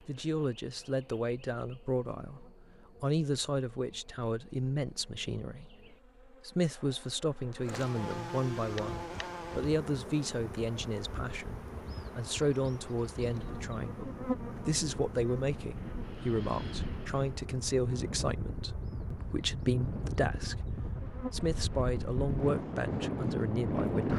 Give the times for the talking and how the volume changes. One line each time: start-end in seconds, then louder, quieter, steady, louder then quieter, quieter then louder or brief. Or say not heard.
0.1-24.1 steady.